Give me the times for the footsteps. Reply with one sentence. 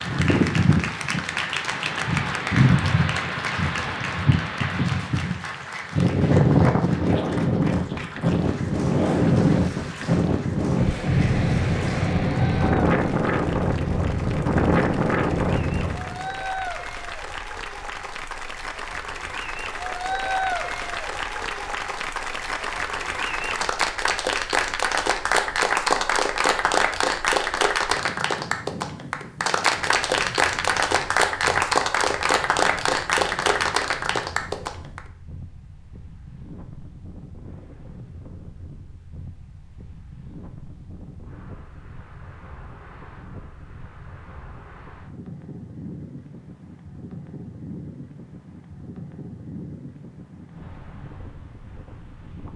You can't hear the footsteps here.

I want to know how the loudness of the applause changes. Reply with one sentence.
The loudness of the applause goes down, then up.